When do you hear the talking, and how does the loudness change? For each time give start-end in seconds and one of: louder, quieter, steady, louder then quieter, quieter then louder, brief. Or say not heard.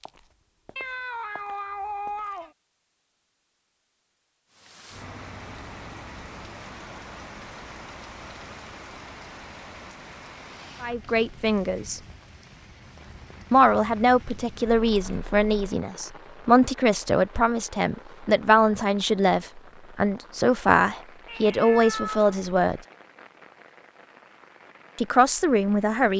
10.8-12.0 brief
13.5-22.8 steady
24.9-26.1 brief.